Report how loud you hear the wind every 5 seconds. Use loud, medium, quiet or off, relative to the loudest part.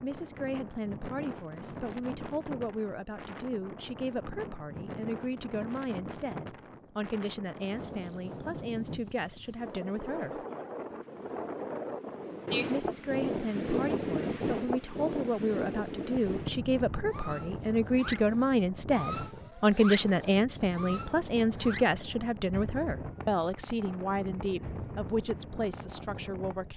medium, medium, loud, medium, medium, medium.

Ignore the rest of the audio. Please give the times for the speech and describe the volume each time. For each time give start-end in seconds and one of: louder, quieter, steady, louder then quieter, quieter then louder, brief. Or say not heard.
0.0-10.4 steady
12.7-26.7 louder then quieter.